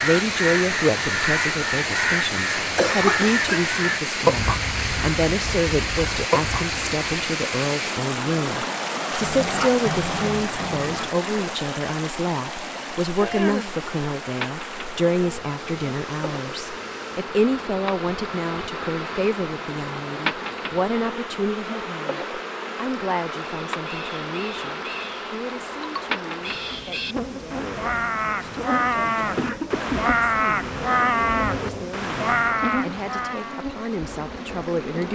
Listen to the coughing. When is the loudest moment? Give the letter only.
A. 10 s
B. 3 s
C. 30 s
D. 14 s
B.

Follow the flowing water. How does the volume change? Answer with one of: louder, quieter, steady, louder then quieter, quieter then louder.
quieter.